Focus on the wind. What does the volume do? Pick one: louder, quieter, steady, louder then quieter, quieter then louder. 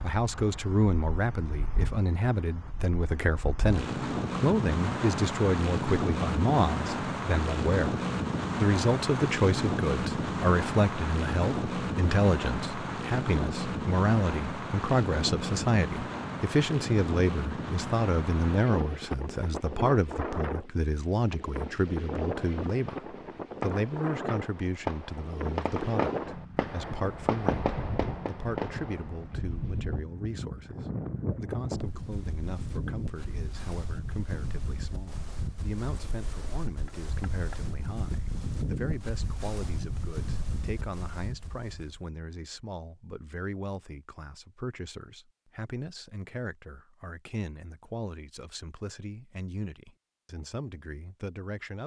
quieter.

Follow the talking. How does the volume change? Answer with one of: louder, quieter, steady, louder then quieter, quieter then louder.
quieter.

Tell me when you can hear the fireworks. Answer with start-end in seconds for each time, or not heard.
22.6-29.2.